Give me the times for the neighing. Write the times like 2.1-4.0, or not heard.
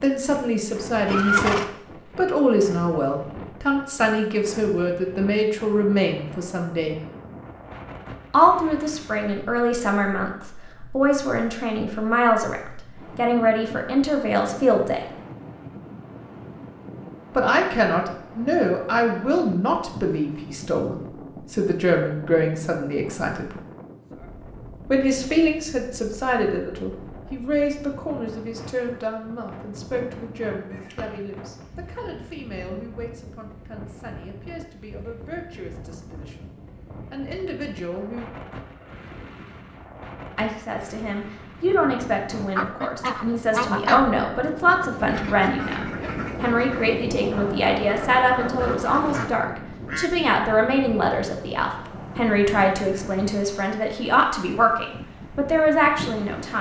1.1-1.7, 30.7-31.2, 48.5-49.3.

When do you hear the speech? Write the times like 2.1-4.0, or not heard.
0.0-7.0, 8.3-15.1, 17.3-23.6, 24.9-38.4, 40.4-56.5.